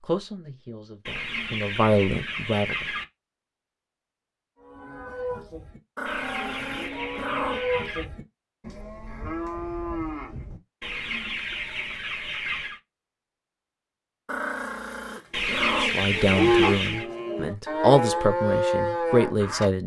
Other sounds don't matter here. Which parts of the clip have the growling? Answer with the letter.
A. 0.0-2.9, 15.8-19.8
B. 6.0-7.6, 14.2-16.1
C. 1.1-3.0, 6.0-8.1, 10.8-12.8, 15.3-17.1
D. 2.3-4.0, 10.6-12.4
B.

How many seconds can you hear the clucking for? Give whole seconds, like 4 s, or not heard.
8 s.